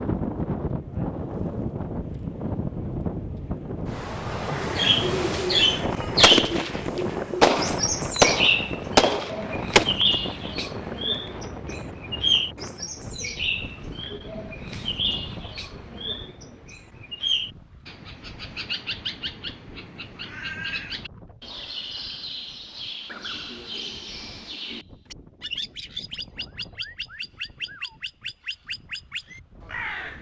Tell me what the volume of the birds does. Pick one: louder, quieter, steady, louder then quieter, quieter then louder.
quieter.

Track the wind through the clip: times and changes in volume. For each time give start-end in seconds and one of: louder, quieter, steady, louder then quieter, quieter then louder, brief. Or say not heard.
0.0-30.1 quieter.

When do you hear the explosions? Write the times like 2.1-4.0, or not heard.
6.2-9.8.